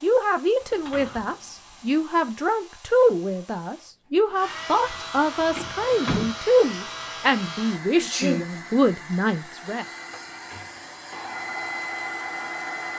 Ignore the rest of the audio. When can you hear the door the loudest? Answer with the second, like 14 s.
6 s.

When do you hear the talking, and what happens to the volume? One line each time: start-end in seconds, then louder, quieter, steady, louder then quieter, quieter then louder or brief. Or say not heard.
0.0-9.8 steady.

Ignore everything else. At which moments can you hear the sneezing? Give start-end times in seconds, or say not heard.
8.0-8.4.